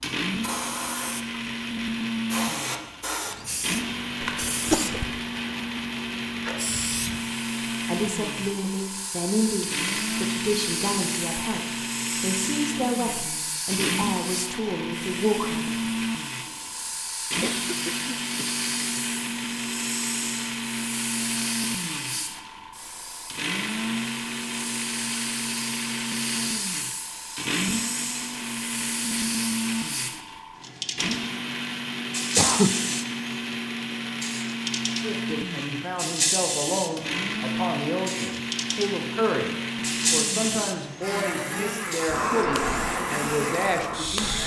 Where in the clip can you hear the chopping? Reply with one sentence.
You can't hear the chopping here.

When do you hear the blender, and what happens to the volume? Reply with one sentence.
The blender can be heard from 0.0 to 44.4 s, at a steady volume.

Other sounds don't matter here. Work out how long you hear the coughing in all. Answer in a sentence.
You can hear the coughing for 3 seconds altogether.